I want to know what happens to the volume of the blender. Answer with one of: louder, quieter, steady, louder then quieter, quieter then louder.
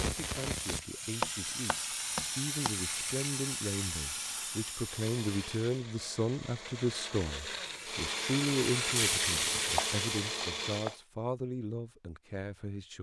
louder.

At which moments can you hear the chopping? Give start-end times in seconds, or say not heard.
1.2-2.8, 9.8-10.9.